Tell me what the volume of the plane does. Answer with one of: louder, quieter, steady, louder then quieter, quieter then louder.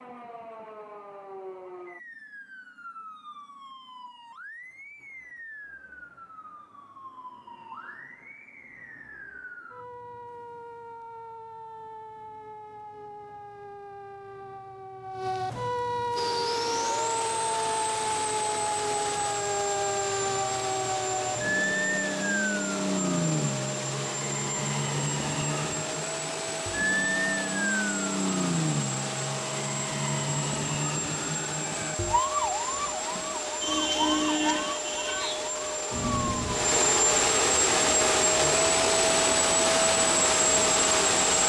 louder.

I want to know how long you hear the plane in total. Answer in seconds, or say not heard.
25 s.